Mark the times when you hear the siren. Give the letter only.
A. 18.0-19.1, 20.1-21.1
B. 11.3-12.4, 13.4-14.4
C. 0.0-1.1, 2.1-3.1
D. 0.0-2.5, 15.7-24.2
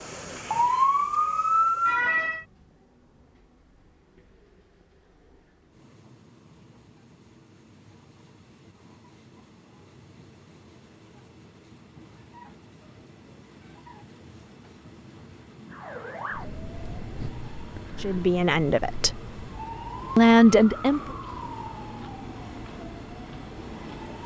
D.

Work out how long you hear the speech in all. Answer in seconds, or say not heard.
2 s.